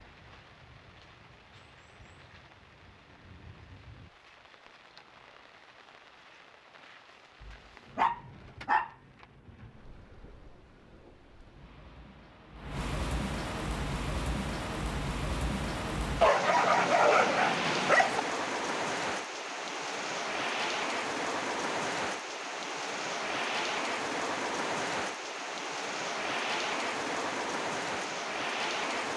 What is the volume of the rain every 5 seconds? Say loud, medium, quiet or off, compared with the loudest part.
quiet, quiet, medium, loud, loud, loud.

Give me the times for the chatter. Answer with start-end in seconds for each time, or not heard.
not heard.